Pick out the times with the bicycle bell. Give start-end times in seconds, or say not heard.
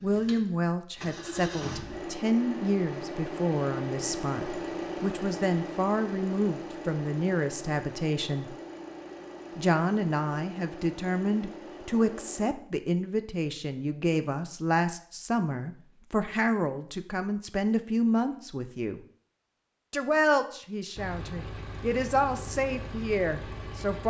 not heard.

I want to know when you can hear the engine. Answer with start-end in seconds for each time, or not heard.
0.0-12.6, 20.9-24.0.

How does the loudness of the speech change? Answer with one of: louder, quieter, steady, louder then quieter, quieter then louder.
steady.